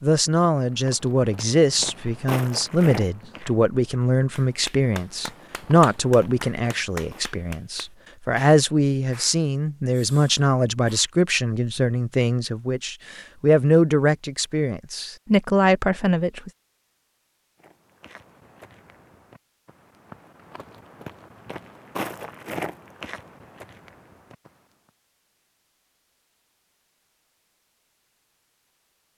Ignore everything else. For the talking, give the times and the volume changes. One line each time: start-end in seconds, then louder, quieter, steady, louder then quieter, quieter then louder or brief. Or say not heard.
0.0-16.5 steady.